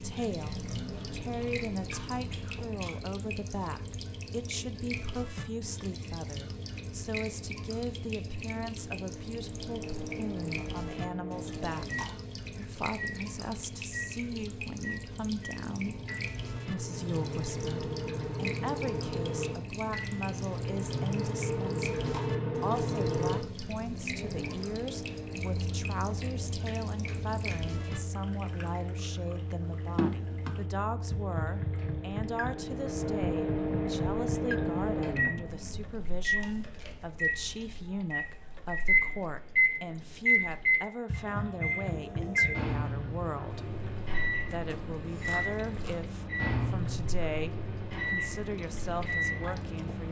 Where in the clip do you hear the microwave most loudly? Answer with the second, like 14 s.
39 s.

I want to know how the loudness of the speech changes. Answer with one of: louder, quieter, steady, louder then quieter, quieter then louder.
steady.